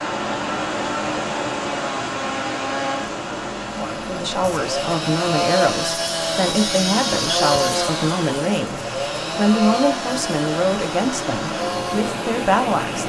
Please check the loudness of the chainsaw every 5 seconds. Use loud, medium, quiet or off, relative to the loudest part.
medium, loud, medium.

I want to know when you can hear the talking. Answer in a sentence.
You can hear the talking from 3.7 to 13.0 s.